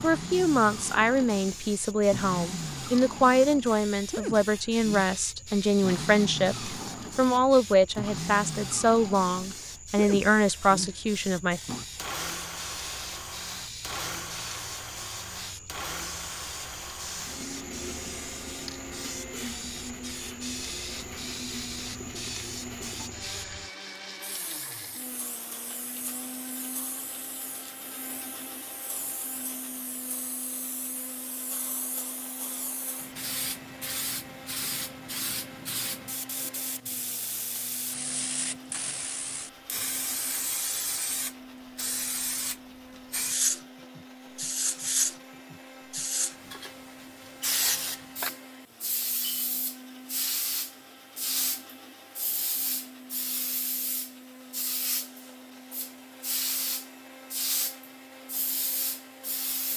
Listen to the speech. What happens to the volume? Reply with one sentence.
The volume of the speech stays about the same.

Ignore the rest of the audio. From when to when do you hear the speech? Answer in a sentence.
You can hear the speech from 0.0 to 11.6 s.